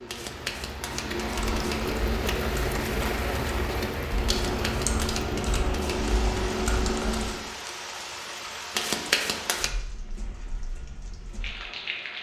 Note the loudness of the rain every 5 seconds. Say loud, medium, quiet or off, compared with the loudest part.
loud, medium, medium.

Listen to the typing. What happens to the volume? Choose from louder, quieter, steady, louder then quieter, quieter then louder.
louder.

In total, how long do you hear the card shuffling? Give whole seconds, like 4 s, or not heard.
5 s.